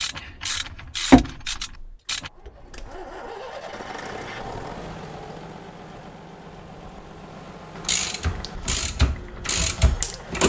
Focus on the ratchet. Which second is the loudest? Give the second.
1 s.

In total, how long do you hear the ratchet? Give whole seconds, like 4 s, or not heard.
5 s.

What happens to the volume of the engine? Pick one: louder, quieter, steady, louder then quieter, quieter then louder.
louder then quieter.